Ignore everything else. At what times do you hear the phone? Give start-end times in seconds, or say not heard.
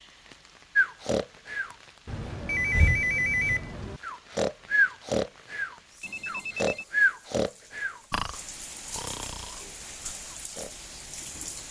2.0-4.0, 6.0-6.8.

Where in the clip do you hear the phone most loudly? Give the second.
3 s.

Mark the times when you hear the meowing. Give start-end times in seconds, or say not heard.
not heard.